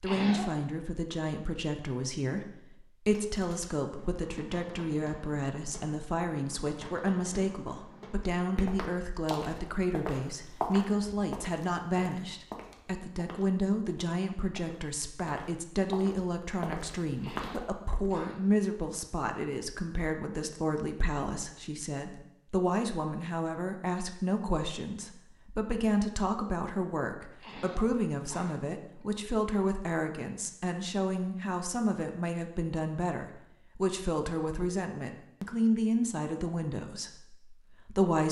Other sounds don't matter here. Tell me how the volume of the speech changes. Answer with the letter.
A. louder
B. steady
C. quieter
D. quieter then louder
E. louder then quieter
B.